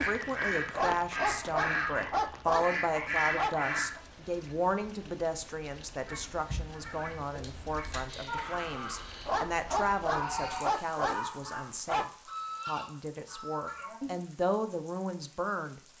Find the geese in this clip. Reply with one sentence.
You can hear the geese from 0.0 to 4.0 s and from 6.0 to 14.2 s.